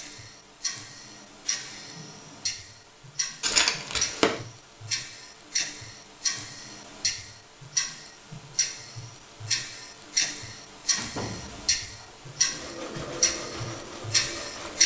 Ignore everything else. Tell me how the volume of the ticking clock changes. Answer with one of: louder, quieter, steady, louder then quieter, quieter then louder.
louder.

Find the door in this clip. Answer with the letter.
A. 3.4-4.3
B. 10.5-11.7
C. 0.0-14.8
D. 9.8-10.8
B.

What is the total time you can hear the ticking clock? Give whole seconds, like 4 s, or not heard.
15 s.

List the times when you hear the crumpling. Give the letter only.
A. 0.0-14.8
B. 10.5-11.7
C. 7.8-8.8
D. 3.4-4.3
D.